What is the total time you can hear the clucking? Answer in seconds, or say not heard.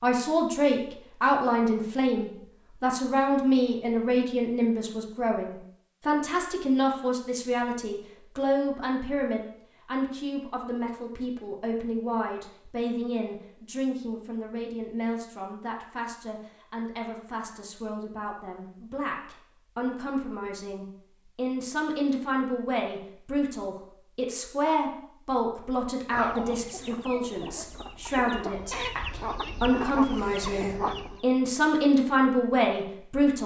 5 s.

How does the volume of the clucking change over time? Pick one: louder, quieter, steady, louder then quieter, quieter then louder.
louder.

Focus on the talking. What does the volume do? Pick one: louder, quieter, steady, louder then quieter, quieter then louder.
quieter then louder.